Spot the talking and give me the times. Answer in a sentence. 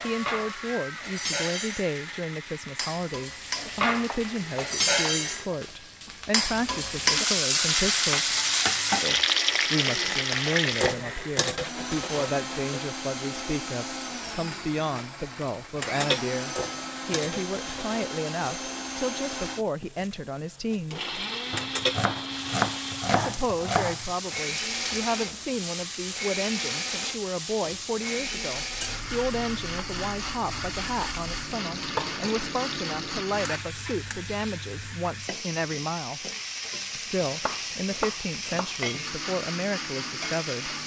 The talking can be heard from 0.0 to 8.3 s, from 9.7 to 21.1 s, from 23.1 to 36.2 s and from 37.0 to 40.8 s.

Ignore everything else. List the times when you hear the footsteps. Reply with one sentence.
You can't hear the footsteps here.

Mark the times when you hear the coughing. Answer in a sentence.
You can't hear the coughing here.